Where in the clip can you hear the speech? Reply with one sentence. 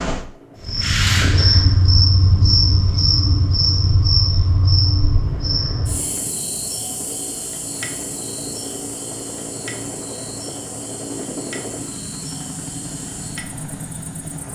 The speech can't be heard in this clip.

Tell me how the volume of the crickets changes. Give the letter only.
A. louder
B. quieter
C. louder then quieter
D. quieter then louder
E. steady
B.